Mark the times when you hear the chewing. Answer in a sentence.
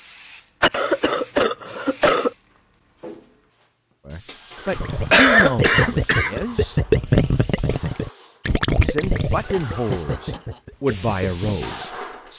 The chewing can't be heard in this clip.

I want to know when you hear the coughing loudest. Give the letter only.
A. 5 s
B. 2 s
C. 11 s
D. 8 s
A.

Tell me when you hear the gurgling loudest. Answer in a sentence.
The loudest moment of the gurgling is at 7 seconds.